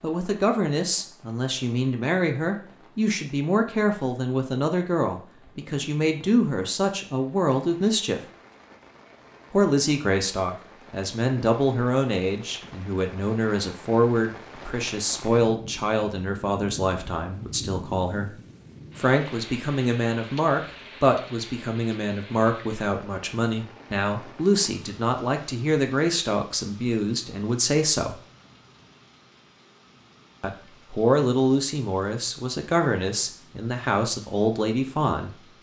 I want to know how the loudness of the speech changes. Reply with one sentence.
The loudness of the speech stays about the same.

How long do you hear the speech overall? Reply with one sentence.
The speech can be heard for 31 seconds in total.